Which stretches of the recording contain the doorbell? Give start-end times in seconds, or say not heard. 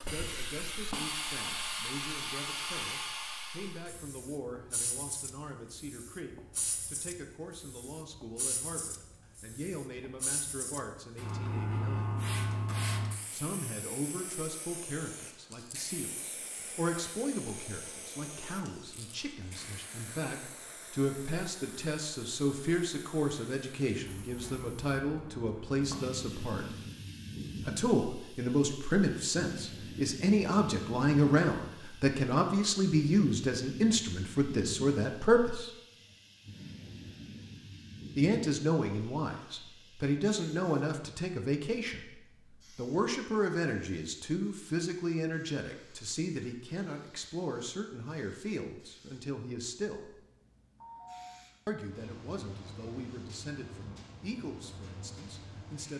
50.8-51.4.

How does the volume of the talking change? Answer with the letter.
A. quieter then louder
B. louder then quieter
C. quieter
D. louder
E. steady
B.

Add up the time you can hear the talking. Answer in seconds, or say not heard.
49 s.